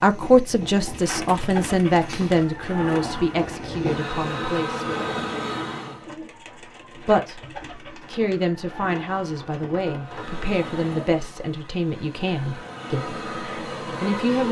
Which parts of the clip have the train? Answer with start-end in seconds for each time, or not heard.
0.0-6.0, 10.0-14.4.